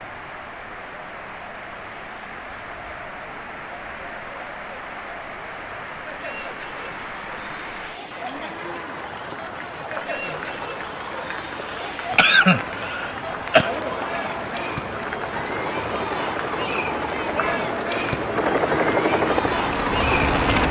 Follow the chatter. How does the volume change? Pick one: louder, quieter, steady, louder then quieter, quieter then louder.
louder.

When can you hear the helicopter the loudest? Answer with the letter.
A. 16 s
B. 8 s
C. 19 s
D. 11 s
C.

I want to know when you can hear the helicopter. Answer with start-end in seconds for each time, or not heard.
15.7-20.6.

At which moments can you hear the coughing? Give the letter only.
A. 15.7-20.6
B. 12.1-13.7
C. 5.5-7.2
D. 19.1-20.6
B.